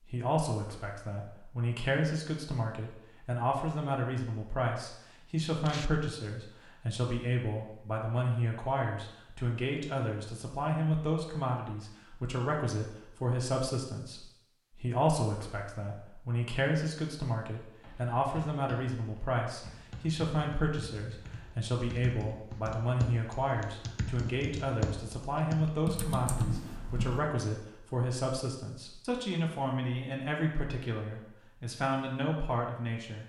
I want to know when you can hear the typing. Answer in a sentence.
You can hear the typing from 17.8 to 27.2 s.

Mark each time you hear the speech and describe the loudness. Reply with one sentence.
You can hear the speech from 0.1 to 33.2 s, at a steady volume.